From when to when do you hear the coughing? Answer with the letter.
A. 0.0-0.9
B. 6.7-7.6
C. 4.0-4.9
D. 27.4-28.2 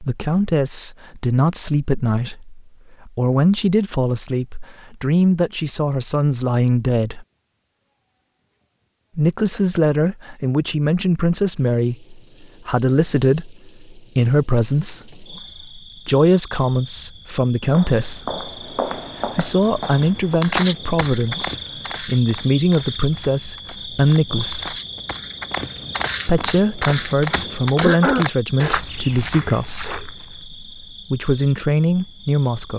D.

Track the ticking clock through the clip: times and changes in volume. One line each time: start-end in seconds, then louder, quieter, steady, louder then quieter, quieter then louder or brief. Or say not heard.
not heard.